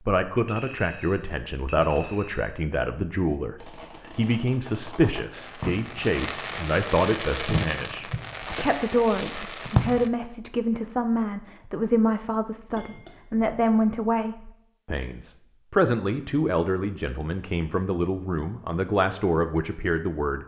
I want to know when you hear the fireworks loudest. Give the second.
10 s.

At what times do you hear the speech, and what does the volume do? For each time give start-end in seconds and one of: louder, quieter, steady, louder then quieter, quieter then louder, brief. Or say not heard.
0.1-20.4 steady.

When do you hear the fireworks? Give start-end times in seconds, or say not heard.
3.5-10.1.